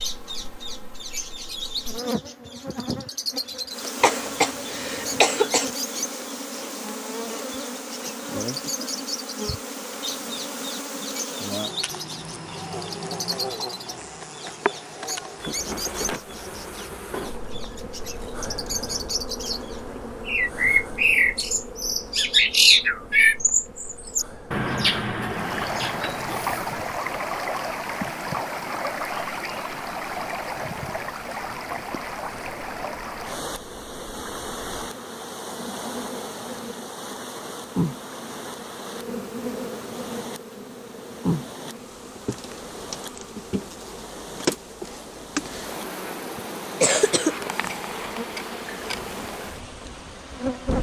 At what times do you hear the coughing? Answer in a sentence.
The coughing can be heard from 4.0 to 5.7 s and from 46.4 to 47.7 s.